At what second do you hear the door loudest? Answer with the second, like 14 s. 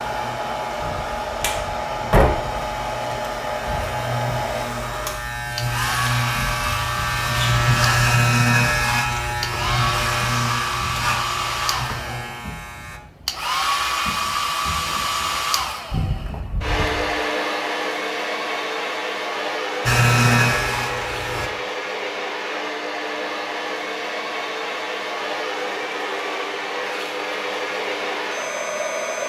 2 s.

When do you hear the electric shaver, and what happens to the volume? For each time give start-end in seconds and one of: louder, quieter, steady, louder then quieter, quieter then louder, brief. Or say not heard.
0.0-13.0 louder then quieter
19.9-21.5 brief.